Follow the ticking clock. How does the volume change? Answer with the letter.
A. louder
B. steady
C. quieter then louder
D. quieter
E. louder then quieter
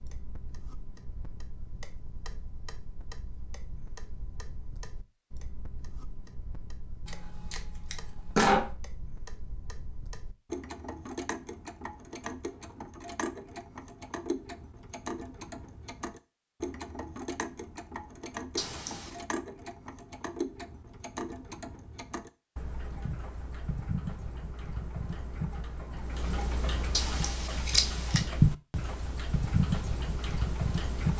A.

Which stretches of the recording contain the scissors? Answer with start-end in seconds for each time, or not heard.
7.0-8.7, 18.6-19.1, 26.9-28.2.